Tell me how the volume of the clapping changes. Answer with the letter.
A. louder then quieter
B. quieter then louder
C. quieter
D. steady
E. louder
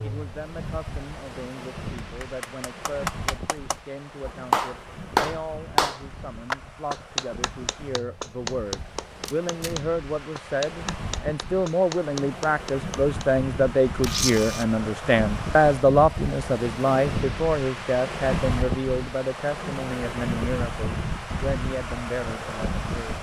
A.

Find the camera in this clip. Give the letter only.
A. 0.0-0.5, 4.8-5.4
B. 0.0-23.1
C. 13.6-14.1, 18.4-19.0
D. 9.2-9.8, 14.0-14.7
D.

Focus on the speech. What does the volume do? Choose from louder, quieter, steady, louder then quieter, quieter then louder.
louder then quieter.